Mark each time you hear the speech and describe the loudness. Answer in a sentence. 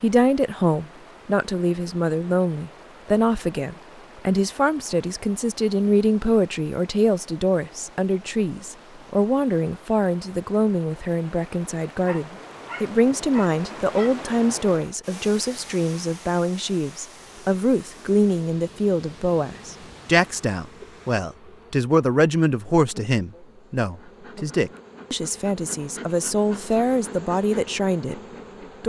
You can hear the speech from 0.0 to 28.1 s, at a steady volume.